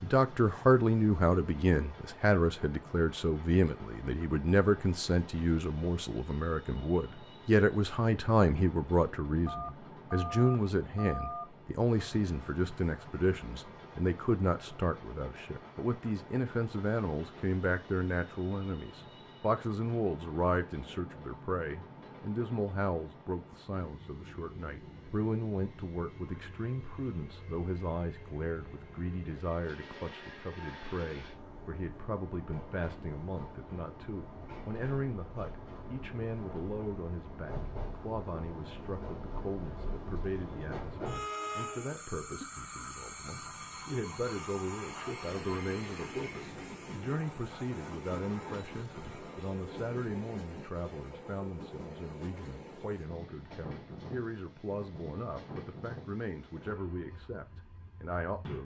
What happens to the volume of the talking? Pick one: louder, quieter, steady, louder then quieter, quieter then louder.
quieter.